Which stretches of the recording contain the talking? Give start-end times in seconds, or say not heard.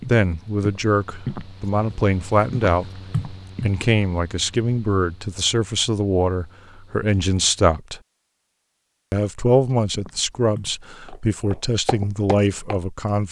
0.1-3.0, 3.6-8.0, 9.1-13.2.